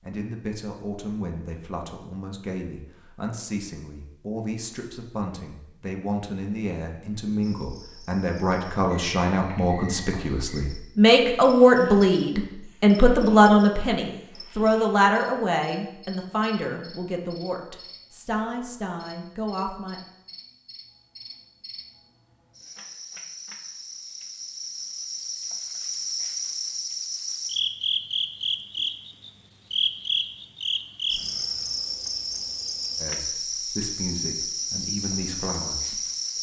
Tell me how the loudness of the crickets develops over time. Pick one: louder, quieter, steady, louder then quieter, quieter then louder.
louder.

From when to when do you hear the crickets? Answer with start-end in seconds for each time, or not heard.
7.4-36.3.